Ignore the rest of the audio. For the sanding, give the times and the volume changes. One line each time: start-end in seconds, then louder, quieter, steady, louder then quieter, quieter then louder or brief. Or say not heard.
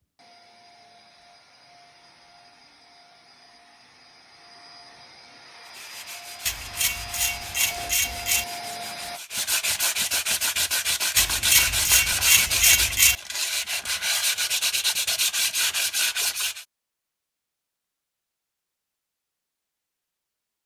5.7-16.6 louder.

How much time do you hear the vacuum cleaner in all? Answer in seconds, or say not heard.
9 s.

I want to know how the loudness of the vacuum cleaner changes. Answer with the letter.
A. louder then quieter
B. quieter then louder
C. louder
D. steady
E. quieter
C.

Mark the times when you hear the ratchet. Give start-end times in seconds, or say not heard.
6.5-8.4, 11.2-13.2.